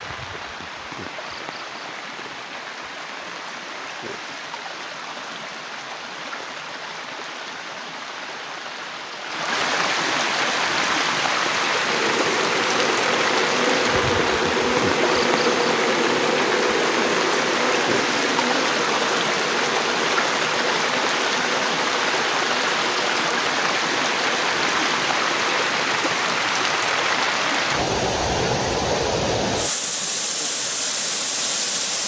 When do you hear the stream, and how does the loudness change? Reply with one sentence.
The stream can be heard from 0.0 to 32.0 s, getting louder.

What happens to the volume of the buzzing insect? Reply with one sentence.
The loudness of the buzzing insect goes down.